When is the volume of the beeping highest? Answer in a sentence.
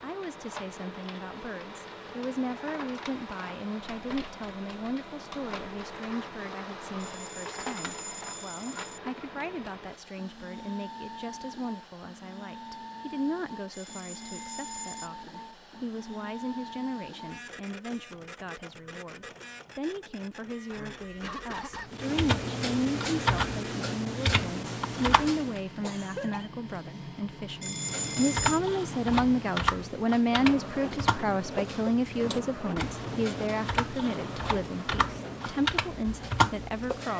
The volume of the beeping peaks at 28 seconds.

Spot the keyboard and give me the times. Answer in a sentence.
You can hear the keyboard from 21.9 to 25.6 s and from 27.8 to 37.1 s.